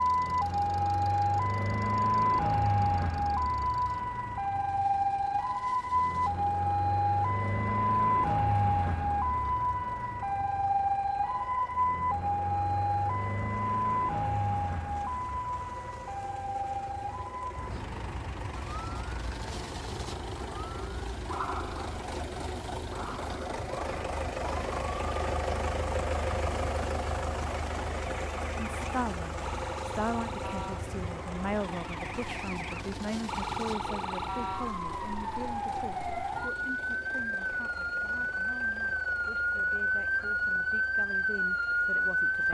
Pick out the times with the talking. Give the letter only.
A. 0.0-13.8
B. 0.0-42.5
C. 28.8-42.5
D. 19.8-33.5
C.